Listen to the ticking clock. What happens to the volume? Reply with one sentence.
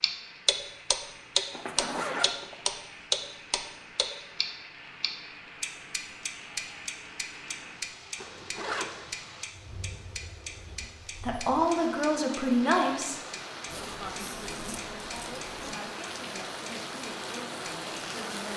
The volume of the ticking clock goes down.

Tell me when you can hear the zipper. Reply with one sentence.
You can hear the zipper from 1.5 to 2.6 s, from 8.2 to 9.3 s and from 13.7 to 15.8 s.